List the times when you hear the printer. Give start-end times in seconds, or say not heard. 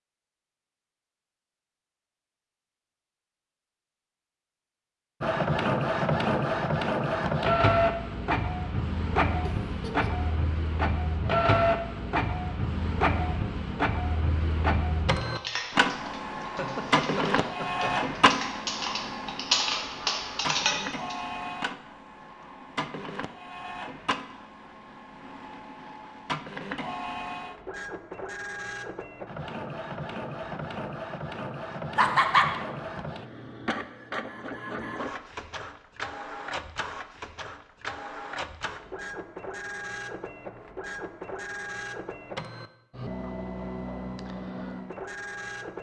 5.2-45.7.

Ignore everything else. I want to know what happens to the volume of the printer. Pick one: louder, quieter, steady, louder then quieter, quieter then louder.
quieter.